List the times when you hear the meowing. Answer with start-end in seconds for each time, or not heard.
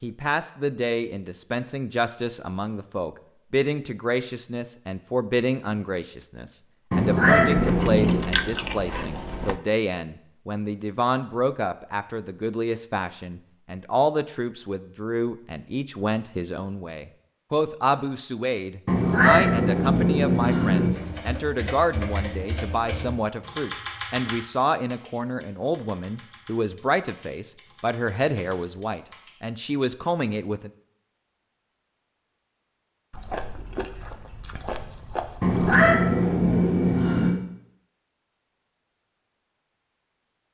6.9-8.2, 18.9-20.9, 35.4-37.4.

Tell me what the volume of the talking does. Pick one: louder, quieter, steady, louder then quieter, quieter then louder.
steady.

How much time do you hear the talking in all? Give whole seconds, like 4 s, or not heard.
31 s.